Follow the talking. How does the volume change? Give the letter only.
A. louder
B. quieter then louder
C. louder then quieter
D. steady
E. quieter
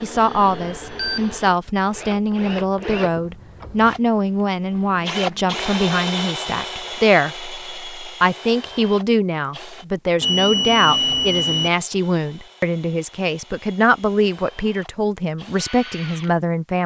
D.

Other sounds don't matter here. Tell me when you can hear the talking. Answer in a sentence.
You can hear the talking from 0.0 to 16.8 s.